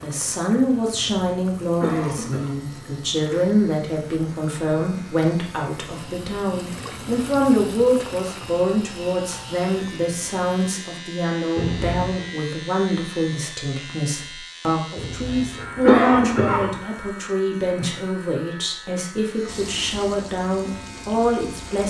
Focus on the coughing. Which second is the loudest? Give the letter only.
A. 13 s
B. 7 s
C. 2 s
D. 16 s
D.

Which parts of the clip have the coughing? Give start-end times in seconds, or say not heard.
0.9-2.5, 11.6-12.2, 14.9-16.8.